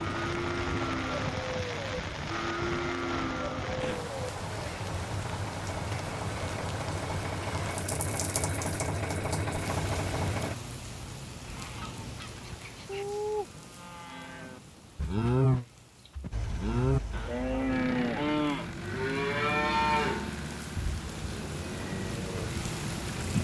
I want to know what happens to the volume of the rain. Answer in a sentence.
The volume of the rain goes down, then up.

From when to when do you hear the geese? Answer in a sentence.
You can hear the geese from 11.4 to 13.1 s.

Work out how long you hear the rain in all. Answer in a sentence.
The rain can be heard for 23 seconds in total.